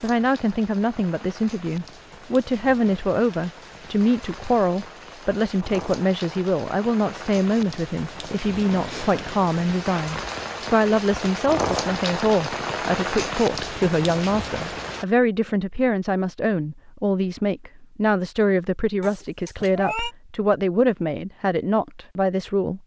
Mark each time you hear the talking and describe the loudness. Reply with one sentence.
You can hear the talking from 0.0 to 22.8 s, at a steady volume.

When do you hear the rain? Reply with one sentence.
You can hear the rain from 0.0 to 15.1 s.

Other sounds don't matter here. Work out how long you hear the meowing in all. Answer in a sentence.
The meowing can be heard for 2 seconds in total.